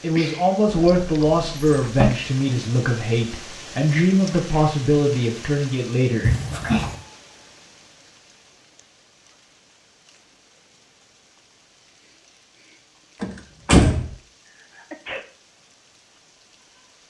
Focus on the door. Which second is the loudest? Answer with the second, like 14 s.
14 s.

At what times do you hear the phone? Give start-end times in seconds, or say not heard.
not heard.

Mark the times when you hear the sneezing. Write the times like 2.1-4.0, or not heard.
14.4-15.2.